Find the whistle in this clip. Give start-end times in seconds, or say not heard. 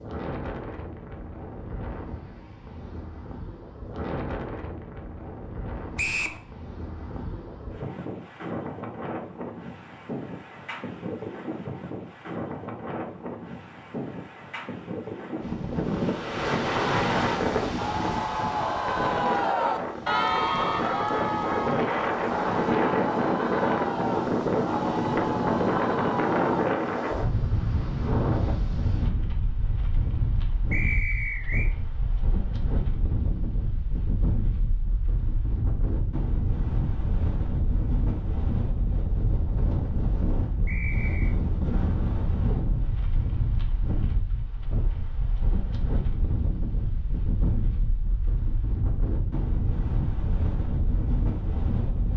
6.0-6.4, 30.7-31.7, 40.6-41.4.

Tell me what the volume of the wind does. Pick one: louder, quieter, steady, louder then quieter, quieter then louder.
louder then quieter.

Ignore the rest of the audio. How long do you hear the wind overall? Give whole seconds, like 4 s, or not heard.
52 s.